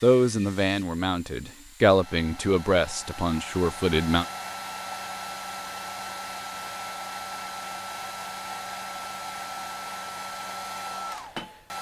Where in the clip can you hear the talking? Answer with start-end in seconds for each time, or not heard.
0.0-4.2.